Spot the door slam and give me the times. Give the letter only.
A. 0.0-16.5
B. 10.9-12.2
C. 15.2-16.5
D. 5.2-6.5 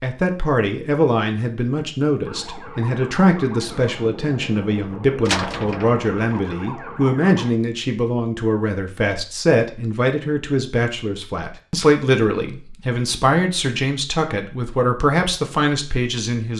D.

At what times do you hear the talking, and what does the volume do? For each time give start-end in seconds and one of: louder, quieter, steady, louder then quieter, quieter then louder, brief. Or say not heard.
0.0-16.5 steady.